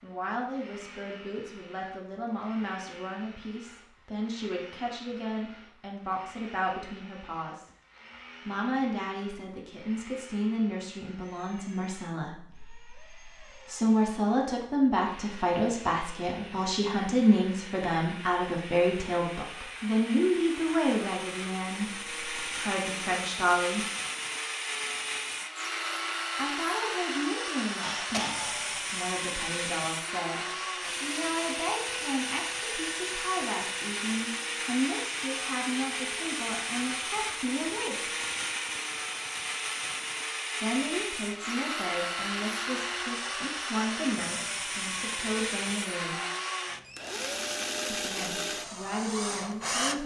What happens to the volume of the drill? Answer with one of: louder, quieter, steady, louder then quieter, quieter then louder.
louder.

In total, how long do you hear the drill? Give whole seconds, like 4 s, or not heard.
50 s.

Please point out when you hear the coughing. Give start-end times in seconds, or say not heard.
27.8-28.9.